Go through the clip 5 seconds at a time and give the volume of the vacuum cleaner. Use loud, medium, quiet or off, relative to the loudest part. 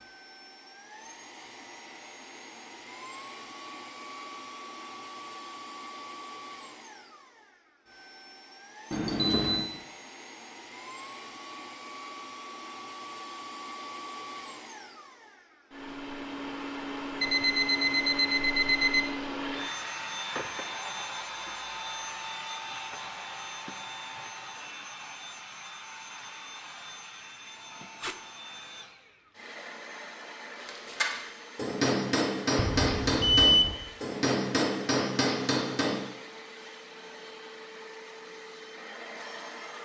medium, medium, medium, loud, loud, medium, medium, medium.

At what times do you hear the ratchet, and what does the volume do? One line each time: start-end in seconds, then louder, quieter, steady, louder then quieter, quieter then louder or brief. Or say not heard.
not heard.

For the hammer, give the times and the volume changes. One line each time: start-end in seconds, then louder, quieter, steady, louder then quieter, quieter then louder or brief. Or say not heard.
30.6-36.0 steady.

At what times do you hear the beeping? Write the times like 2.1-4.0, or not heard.
8.9-9.7, 17.2-19.1, 32.5-33.8.